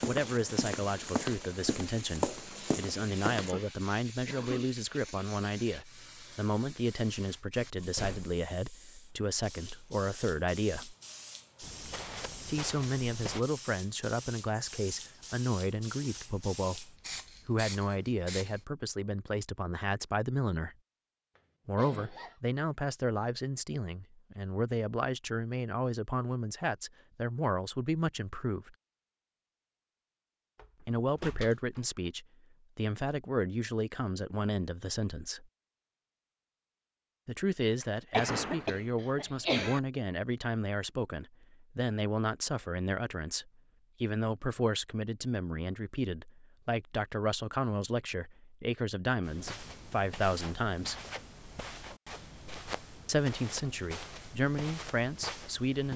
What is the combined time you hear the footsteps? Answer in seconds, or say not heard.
12 s.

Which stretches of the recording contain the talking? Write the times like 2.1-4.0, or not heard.
0.1-10.9, 12.4-20.8, 21.6-28.8, 30.8-35.5, 37.2-51.0, 53.0-55.9.